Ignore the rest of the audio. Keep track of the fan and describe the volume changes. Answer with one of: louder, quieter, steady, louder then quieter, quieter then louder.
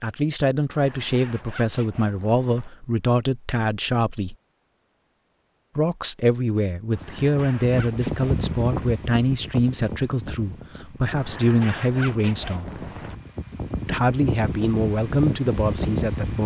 quieter then louder.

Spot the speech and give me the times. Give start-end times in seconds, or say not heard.
0.0-4.3, 5.8-12.7, 13.8-16.4.